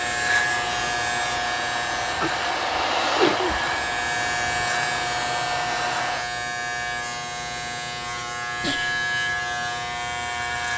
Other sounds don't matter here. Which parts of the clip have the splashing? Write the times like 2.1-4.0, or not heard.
not heard.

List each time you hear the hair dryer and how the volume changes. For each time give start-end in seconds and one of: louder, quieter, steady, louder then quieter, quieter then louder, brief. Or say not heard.
0.0-6.2 louder then quieter.